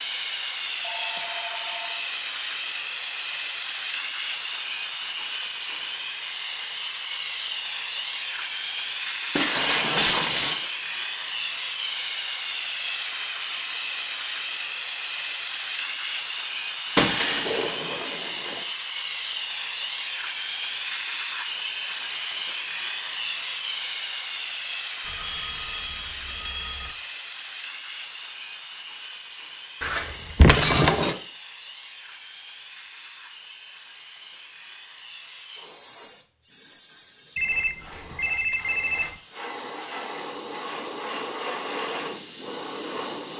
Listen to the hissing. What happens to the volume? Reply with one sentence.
The loudness of the hissing goes down.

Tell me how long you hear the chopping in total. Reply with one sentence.
You can't hear the chopping here.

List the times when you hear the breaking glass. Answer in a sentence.
You can hear the breaking glass from 9.3 to 10.6 s, from 16.9 to 18.6 s and from 29.8 to 31.1 s.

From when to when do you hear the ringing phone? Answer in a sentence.
You can hear the ringing phone from 0.8 to 2.1 s, from 25.0 to 26.9 s and from 37.4 to 39.2 s.